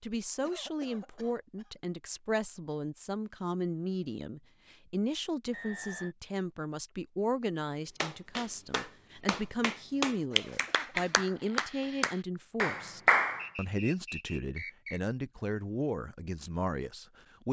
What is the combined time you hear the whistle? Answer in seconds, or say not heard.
2 s.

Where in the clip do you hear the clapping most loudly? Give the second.
13 s.